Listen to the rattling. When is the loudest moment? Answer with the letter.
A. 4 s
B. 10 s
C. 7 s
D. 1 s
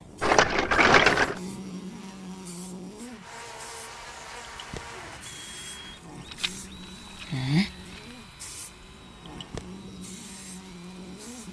D.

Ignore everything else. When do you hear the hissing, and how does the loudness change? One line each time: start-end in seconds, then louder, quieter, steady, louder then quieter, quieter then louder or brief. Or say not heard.
0.0-11.4 louder then quieter.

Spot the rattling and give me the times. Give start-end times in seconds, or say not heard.
0.2-1.4, 6.2-8.2.